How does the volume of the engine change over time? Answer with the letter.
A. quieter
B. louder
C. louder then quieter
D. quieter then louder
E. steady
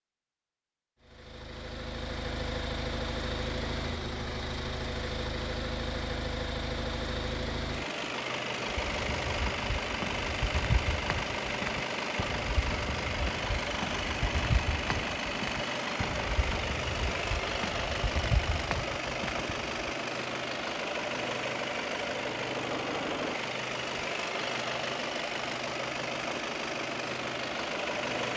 E.